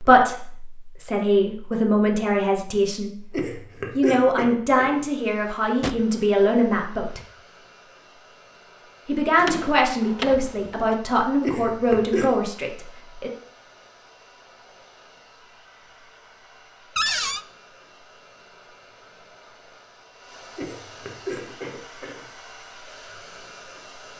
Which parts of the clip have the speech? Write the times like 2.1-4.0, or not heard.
0.0-3.1, 4.0-7.2, 9.1-13.3.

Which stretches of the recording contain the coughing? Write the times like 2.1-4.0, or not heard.
3.3-5.0, 11.4-12.3, 20.6-22.2.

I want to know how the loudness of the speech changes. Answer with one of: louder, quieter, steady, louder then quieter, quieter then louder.
steady.